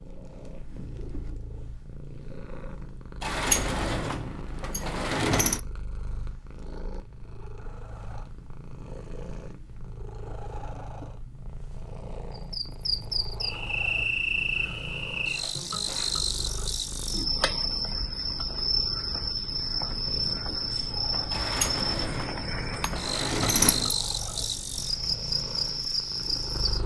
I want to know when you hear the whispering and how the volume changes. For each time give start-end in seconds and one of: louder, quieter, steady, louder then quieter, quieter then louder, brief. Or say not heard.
not heard.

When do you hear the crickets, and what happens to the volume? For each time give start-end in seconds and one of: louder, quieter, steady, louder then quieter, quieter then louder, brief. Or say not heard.
12.3-26.8 steady.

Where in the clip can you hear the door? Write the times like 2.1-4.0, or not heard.
3.2-5.6, 21.3-23.9.